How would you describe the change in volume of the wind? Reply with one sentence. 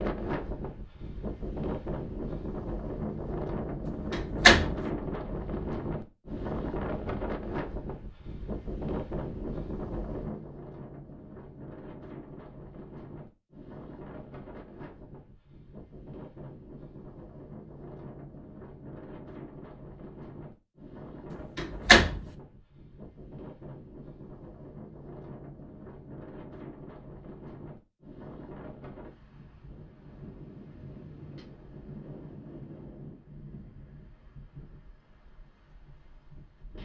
The loudness of the wind goes down.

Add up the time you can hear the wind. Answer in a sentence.
You can hear the wind for 37 seconds altogether.